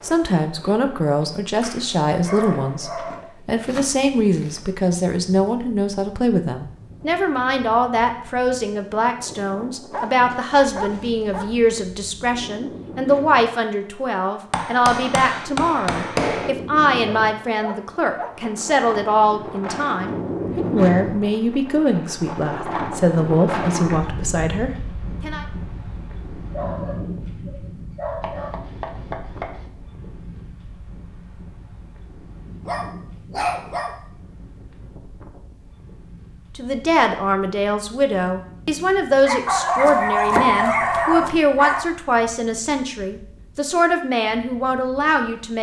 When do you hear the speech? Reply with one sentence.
You can hear the speech from 0.0 to 25.4 s and from 36.5 to 45.5 s.